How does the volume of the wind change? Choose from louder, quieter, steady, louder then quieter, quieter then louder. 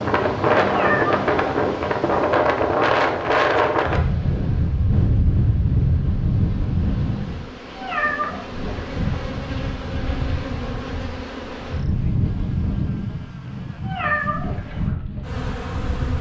quieter.